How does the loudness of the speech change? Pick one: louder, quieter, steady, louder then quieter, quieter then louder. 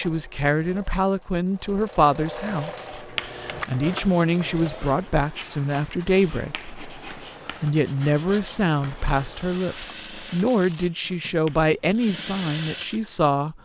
steady.